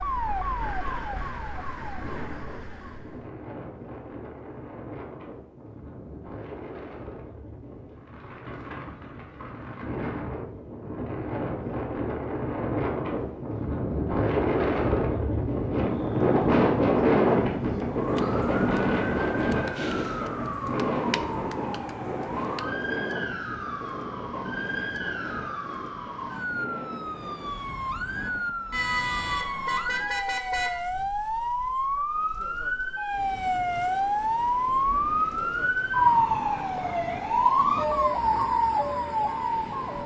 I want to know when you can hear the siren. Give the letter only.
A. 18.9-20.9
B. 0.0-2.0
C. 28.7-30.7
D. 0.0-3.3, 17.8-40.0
D.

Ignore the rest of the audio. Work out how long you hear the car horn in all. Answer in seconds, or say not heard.
2 s.